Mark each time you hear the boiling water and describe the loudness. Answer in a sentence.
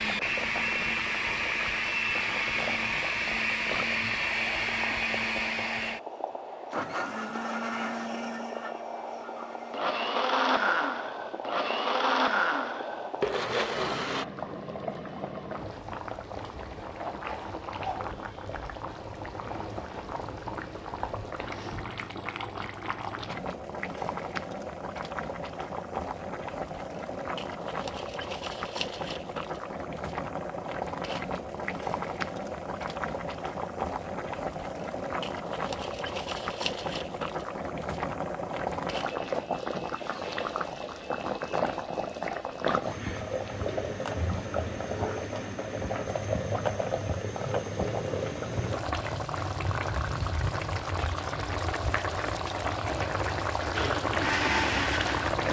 The boiling water can be heard from 0.0 to 55.4 s, getting louder.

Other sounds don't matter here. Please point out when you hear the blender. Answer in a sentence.
The blender can be heard from 0.0 to 14.2 s and from 53.8 to 55.4 s.